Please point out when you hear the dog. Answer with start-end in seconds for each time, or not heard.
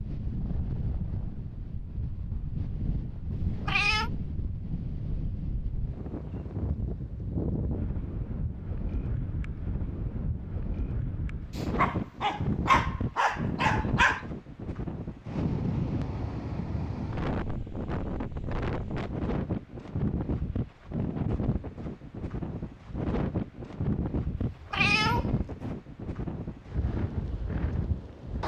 11.6-14.2.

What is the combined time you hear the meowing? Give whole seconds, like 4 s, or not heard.
2 s.